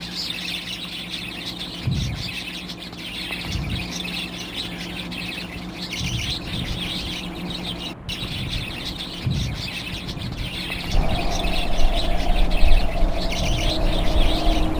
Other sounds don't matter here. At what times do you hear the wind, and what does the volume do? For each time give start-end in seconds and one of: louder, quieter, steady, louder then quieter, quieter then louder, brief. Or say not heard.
6.3-14.7 louder.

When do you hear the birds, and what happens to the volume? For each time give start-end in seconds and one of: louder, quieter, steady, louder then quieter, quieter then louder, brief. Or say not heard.
0.0-14.7 steady.